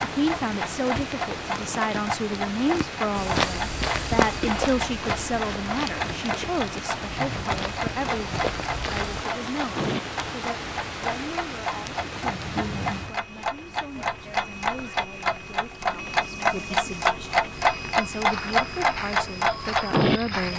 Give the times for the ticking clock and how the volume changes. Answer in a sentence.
You can hear the ticking clock from 0.0 to 20.5 s, getting louder.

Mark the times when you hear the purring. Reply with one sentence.
The purring can't be heard in this clip.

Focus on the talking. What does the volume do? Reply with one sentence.
The volume of the talking goes down, then up.